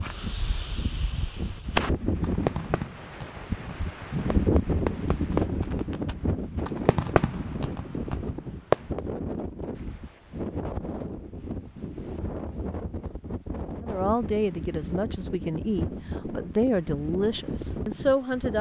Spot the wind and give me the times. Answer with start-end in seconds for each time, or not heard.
0.0-18.5.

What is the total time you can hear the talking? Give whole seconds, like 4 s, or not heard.
5 s.